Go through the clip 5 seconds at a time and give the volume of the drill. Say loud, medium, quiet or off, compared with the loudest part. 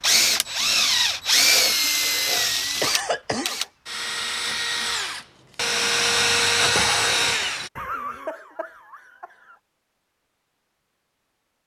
loud, loud, off.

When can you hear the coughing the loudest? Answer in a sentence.
The volume of the coughing peaks at 3 seconds.